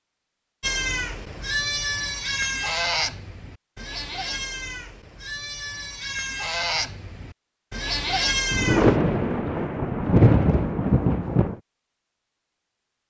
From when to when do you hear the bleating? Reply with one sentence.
You can hear the bleating from 0.6 to 9.0 s.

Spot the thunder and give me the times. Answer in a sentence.
You can hear the thunder from 8.5 to 11.6 s.